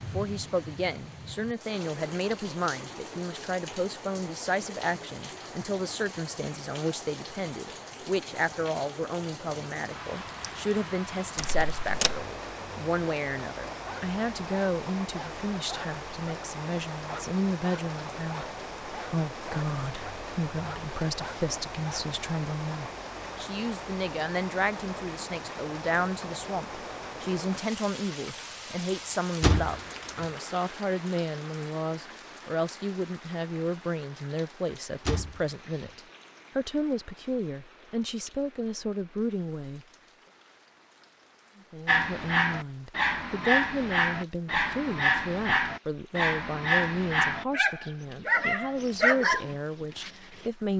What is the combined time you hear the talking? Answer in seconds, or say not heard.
49 s.